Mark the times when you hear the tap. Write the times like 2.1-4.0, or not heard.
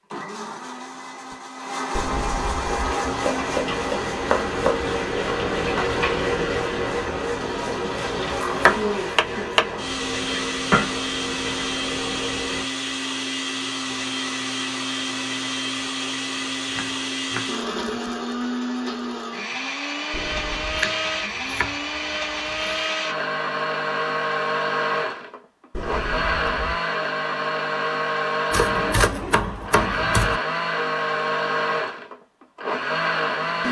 2.6-12.7.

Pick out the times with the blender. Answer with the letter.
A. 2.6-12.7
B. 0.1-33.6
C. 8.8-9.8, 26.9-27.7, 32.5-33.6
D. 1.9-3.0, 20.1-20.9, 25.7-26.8
B.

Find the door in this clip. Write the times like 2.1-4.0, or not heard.
1.9-3.0, 20.1-20.9, 25.7-26.8.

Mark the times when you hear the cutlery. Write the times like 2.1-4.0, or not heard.
not heard.